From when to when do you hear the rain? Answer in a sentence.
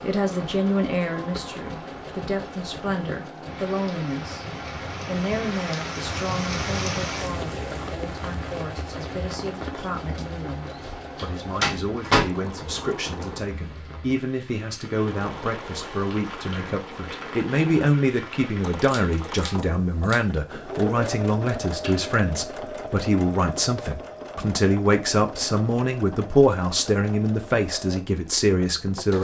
The rain can be heard from 0.0 to 19.6 s.